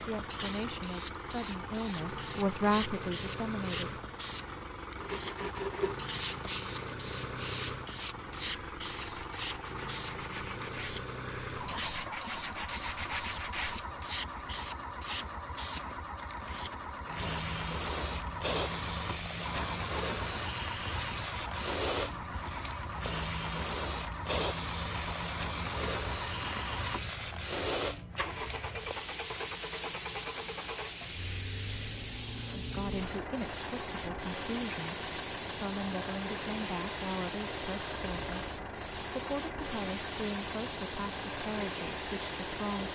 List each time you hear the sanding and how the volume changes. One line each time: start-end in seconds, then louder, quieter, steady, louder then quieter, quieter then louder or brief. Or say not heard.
5.0-13.8 quieter then louder.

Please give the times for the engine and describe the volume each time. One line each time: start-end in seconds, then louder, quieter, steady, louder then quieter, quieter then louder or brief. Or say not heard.
0.0-42.8 steady.